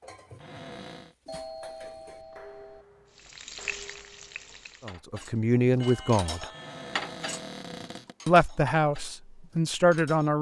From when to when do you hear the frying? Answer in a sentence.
You can hear the frying from 3.1 to 5.0 s.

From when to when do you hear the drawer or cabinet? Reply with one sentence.
You can hear the drawer or cabinet from 0.3 to 1.1 s and from 6.5 to 8.2 s.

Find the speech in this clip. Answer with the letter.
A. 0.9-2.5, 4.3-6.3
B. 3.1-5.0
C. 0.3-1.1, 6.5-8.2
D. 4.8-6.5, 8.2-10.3
D.